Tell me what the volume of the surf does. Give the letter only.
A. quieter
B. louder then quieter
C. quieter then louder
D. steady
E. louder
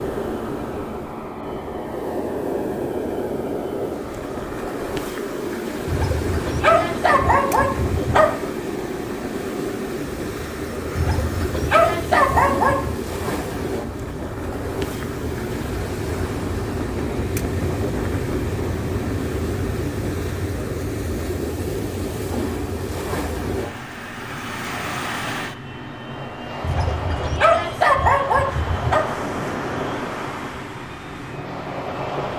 D.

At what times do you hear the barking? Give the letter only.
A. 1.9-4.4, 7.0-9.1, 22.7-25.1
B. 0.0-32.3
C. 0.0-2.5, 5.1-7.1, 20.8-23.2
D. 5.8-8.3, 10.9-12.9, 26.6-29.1
D.